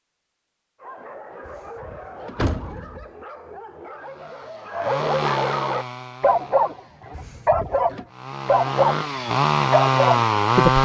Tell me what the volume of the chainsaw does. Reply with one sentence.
The volume of the chainsaw goes down, then up.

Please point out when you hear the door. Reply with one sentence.
You can hear the door from 1.4 to 3.0 s and from 7.1 to 8.1 s.